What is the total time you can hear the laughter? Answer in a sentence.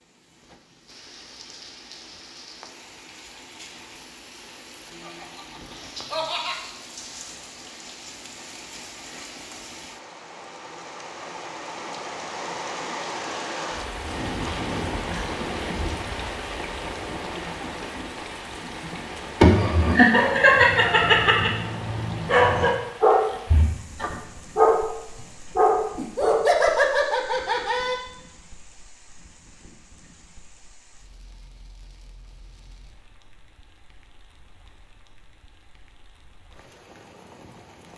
You can hear the laughter for 6 seconds altogether.